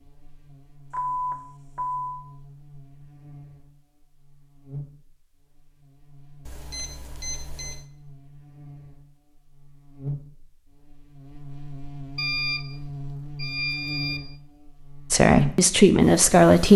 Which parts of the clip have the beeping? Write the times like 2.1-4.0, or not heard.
0.9-2.2, 6.5-7.8, 12.2-12.7, 13.3-14.2.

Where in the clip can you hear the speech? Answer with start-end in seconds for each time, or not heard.
15.1-16.7.